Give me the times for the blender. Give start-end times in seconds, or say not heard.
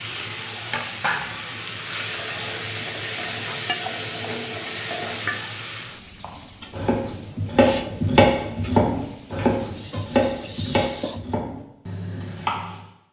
not heard.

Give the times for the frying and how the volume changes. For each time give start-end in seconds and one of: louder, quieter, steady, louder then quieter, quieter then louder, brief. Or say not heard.
0.0-11.2 quieter.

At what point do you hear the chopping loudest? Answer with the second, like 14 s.
8 s.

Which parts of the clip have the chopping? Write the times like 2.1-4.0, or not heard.
6.2-12.8.